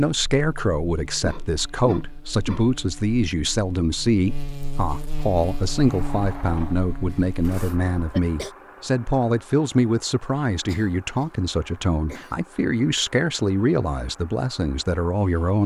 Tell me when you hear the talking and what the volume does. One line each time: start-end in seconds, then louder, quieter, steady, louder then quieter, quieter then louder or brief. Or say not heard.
0.0-15.6 steady.